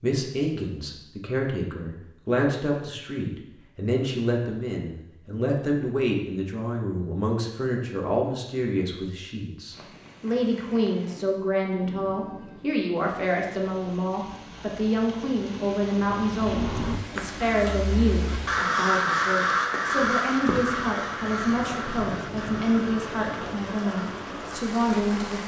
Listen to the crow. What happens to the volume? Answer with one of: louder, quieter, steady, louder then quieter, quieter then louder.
louder then quieter.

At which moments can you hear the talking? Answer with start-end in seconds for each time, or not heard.
0.0-25.4.